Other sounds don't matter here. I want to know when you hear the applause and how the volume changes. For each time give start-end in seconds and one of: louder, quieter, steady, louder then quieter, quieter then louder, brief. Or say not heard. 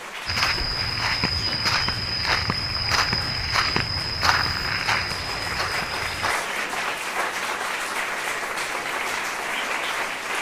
0.0-10.3 louder.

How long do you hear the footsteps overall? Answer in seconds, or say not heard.
6 s.